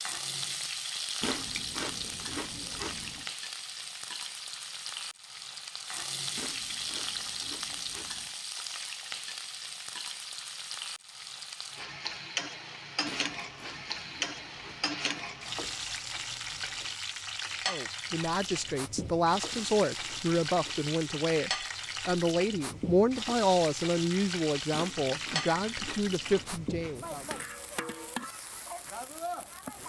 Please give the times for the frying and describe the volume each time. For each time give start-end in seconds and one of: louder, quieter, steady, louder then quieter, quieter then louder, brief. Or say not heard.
0.0-29.8 steady.